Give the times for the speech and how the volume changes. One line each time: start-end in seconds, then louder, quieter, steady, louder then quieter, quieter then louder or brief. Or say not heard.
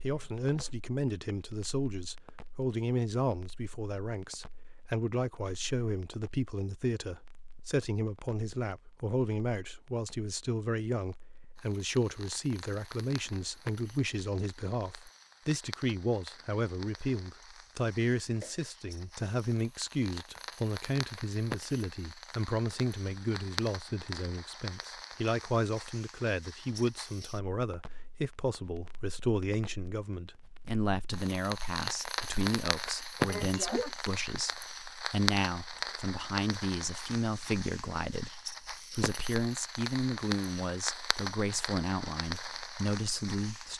0.0-43.7 steady.